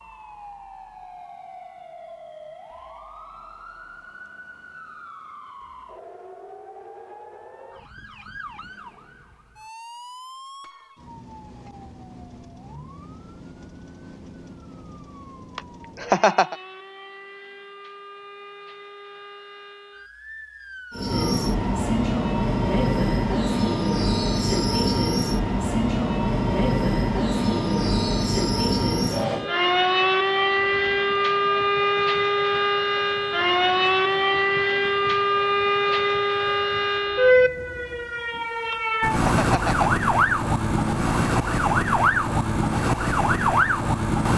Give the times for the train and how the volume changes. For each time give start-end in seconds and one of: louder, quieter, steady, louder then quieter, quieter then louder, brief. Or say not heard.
20.9-38.3 quieter.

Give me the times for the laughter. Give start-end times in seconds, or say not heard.
15.6-16.6, 38.7-39.9.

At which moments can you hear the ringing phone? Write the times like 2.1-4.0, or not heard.
not heard.